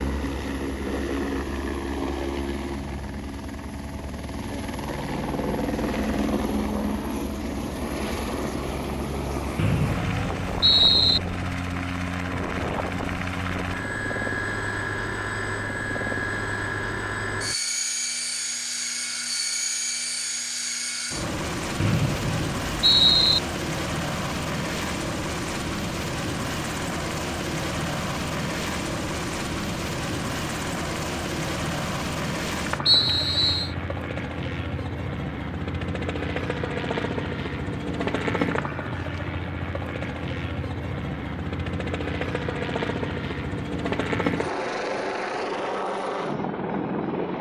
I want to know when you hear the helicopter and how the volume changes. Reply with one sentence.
The helicopter can be heard from 0.0 to 47.3 s, at a steady volume.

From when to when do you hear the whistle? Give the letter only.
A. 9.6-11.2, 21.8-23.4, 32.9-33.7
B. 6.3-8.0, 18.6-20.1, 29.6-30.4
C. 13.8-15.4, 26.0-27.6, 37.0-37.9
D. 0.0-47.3
A.